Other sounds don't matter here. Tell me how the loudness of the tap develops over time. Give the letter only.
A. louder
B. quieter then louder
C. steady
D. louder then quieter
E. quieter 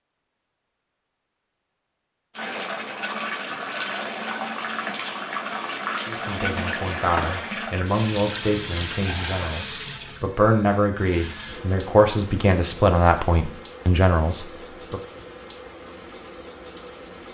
E.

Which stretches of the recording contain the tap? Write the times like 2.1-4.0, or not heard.
2.4-17.2.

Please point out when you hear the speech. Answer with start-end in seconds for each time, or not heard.
6.0-15.0.